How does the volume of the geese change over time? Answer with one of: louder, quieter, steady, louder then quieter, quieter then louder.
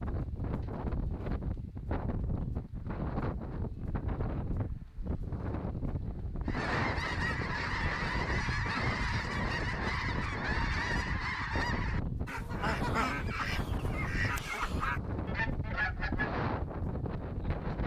steady.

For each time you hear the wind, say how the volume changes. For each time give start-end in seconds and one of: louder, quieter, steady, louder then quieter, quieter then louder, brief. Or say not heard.
0.0-17.8 steady.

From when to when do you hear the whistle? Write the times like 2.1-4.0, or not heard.
not heard.